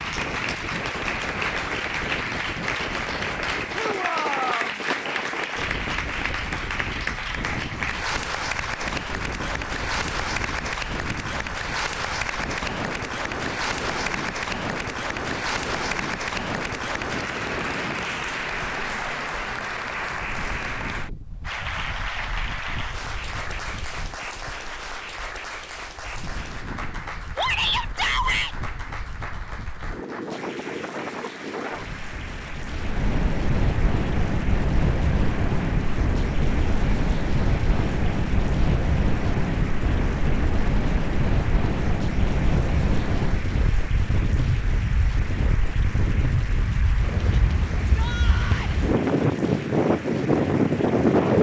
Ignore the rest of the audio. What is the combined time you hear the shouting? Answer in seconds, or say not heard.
3 s.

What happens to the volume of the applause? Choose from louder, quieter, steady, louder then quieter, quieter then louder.
quieter.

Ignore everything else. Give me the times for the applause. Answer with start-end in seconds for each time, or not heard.
0.0-51.3.